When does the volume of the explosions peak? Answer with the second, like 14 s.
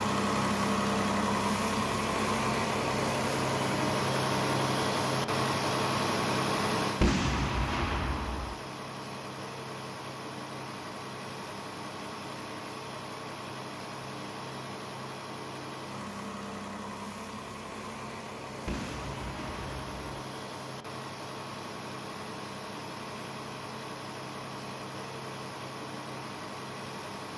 7 s.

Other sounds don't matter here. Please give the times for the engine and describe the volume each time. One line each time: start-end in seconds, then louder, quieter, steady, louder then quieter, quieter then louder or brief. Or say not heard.
0.0-27.3 quieter.